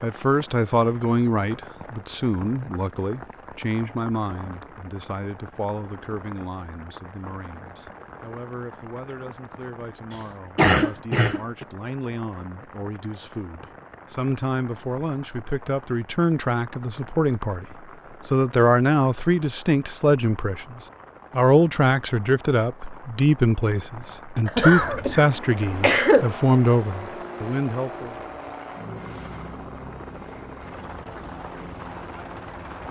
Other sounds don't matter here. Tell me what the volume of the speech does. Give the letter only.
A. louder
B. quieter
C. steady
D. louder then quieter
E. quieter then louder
E.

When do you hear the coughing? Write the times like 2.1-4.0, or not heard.
10.6-11.7, 24.4-26.3.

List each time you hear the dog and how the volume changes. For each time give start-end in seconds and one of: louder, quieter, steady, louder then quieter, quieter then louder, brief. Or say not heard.
not heard.